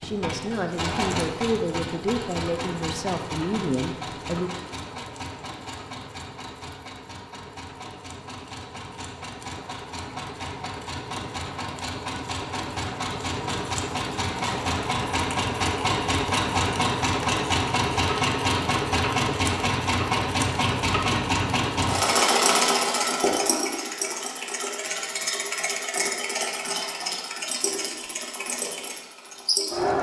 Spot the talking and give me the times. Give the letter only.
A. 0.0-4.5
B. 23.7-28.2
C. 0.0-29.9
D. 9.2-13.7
A.